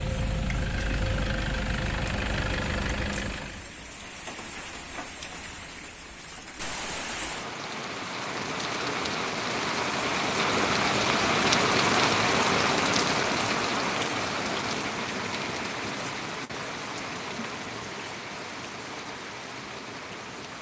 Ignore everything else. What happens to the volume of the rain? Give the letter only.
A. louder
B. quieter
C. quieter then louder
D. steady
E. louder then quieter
E.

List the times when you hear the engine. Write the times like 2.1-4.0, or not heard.
0.0-3.7.